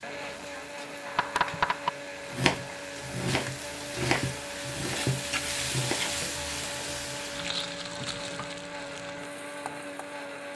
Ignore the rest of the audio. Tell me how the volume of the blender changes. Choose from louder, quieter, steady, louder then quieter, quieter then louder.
steady.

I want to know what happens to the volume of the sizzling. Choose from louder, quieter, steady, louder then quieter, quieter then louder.
louder then quieter.